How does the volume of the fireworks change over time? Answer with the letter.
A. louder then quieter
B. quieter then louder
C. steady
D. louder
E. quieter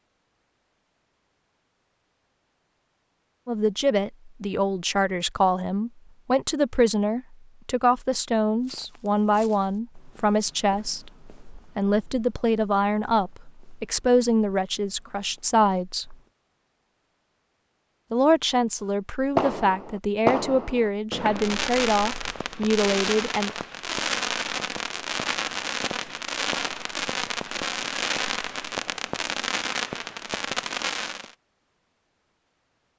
C.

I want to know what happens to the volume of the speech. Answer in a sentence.
The loudness of the speech stays about the same.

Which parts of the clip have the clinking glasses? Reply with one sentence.
You can't hear the clinking glasses here.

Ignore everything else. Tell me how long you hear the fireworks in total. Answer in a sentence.
The fireworks can be heard for 12 seconds in total.